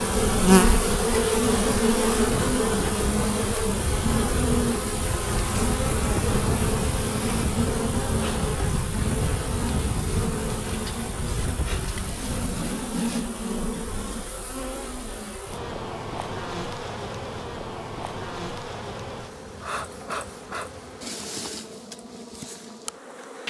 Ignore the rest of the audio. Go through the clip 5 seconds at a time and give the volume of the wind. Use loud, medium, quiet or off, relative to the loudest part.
loud, loud, loud, off, off.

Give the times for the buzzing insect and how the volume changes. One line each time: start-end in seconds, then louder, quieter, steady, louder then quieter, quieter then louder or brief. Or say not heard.
0.0-23.4 quieter.